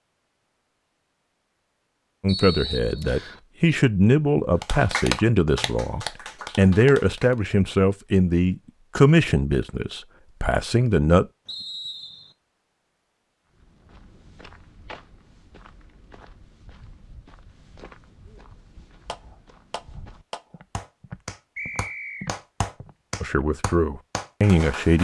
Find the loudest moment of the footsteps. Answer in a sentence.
The loudest moment of the footsteps is at 22 seconds.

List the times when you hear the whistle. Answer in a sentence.
The whistle can be heard from 2.2 to 3.4 s, from 11.4 to 12.3 s and from 21.6 to 22.4 s.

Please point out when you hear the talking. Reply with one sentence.
The talking can be heard from 2.2 to 11.2 s and from 23.2 to 24.9 s.